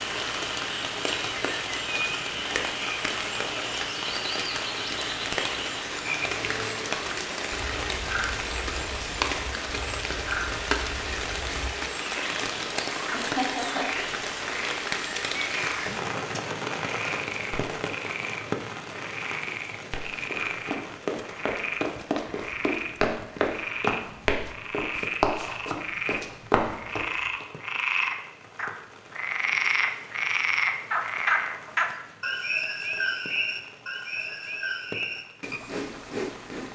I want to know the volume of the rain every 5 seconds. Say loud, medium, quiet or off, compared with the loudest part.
loud, loud, loud, loud, quiet, quiet, quiet, quiet.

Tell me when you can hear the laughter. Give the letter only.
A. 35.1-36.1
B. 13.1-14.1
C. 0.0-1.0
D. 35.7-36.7
B.